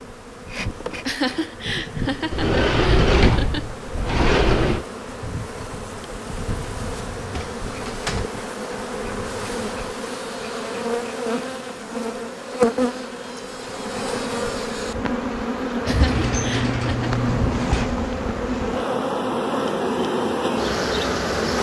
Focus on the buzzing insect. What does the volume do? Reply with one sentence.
The loudness of the buzzing insect goes up.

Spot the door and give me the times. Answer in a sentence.
You can hear the door from 2.3 to 4.8 s, from 7.3 to 8.2 s and from 15.8 to 17.9 s.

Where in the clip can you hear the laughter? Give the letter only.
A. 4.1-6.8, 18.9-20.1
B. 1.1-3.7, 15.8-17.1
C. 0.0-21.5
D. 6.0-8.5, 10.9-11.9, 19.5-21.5
B.